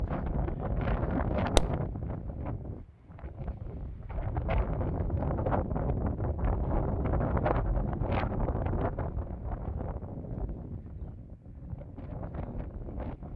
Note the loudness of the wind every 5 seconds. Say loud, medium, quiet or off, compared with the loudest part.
loud, loud, medium.